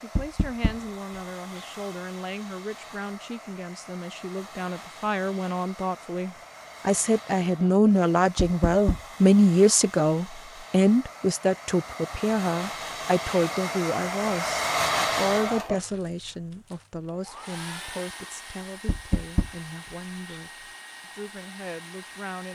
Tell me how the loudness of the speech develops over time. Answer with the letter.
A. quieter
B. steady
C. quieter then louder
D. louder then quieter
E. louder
D.